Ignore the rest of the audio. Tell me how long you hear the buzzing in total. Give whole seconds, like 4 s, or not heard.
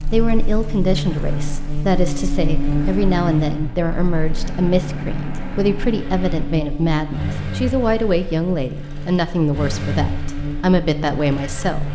12 s.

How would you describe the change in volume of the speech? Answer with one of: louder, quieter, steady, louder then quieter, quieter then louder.
steady.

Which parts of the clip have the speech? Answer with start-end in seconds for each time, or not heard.
0.1-11.9.